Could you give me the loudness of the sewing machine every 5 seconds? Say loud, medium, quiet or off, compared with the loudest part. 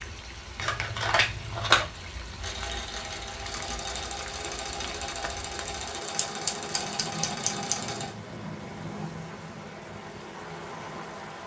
loud, loud, off.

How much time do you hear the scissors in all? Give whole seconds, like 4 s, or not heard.
3 s.